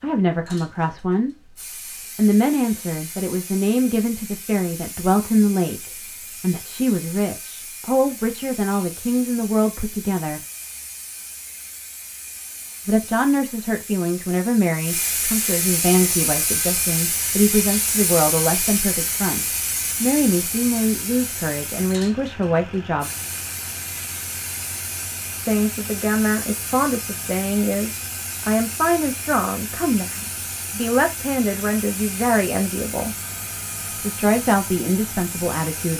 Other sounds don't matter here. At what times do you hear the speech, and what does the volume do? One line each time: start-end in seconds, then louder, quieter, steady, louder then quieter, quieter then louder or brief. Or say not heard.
0.0-10.4 steady
12.8-23.1 steady
25.4-33.1 steady
33.9-35.9 brief.